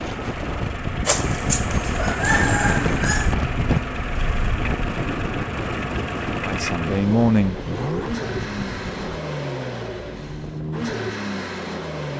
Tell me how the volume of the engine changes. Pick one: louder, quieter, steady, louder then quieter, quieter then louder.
steady.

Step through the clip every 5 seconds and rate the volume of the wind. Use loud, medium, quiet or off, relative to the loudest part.
loud, medium, off.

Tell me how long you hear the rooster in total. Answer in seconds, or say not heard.
2 s.